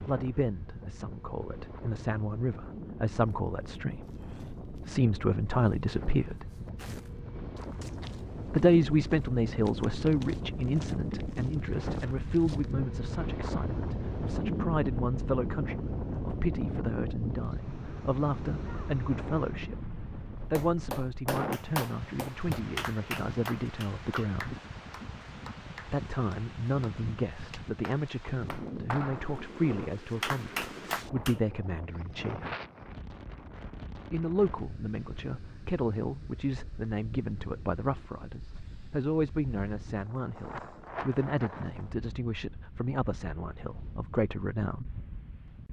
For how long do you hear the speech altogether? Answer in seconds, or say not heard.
40 s.